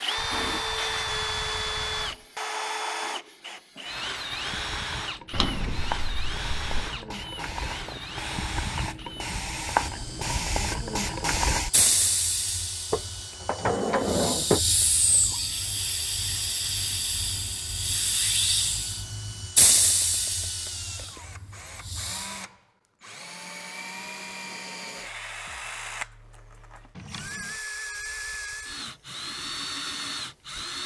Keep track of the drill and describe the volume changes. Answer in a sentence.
The volume of the drill goes down, then up.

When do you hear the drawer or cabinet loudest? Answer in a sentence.
The loudest moment of the drawer or cabinet is at 14 seconds.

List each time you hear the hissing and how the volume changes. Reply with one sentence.
The hissing can be heard from 0.0 to 22.4 s, getting louder.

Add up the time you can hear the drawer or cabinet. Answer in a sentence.
You can hear the drawer or cabinet for 4 seconds altogether.